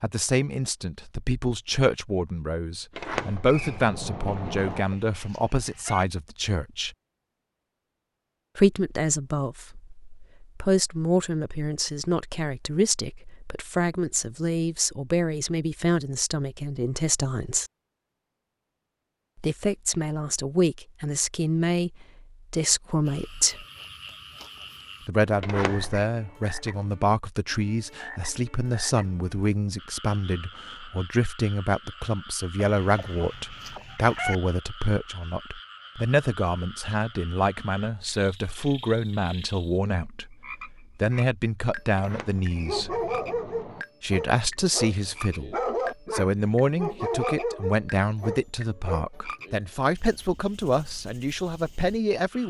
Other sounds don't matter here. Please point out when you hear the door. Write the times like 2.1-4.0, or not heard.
2.9-4.8, 25.4-26.1, 42.0-43.9.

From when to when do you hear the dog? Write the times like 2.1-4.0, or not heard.
42.5-49.6.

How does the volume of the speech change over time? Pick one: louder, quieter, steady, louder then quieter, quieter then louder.
steady.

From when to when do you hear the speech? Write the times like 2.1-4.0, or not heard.
0.0-6.9, 8.6-17.7, 19.4-23.6, 25.1-43.0, 44.0-52.4.